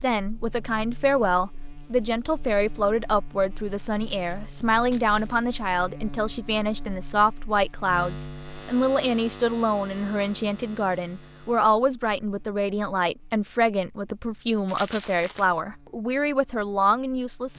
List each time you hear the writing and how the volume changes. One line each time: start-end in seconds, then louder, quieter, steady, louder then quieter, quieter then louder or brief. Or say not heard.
not heard.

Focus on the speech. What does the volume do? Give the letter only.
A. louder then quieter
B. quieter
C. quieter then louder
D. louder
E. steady
E.